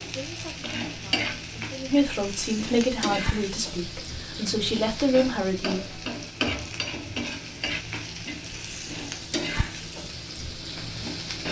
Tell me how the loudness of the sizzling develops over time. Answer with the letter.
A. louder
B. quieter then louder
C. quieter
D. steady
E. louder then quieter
D.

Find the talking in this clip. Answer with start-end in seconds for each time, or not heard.
0.1-6.0.